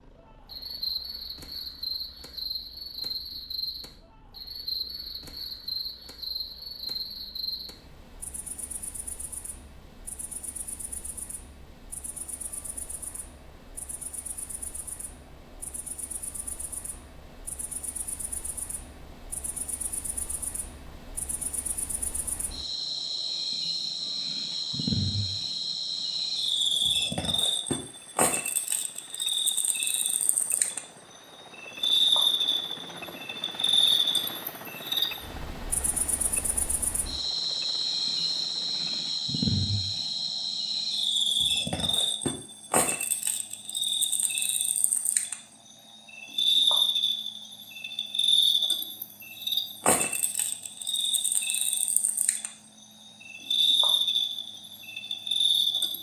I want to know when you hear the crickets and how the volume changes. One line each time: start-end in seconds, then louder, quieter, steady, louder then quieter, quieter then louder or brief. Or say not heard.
0.0-55.9 quieter then louder.